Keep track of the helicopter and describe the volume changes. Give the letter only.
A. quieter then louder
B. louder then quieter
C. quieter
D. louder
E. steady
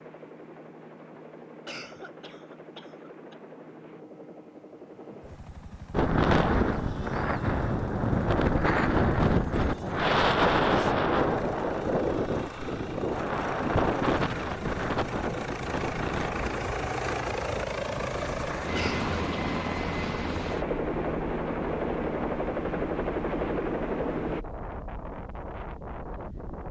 D.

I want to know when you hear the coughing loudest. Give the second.
19 s.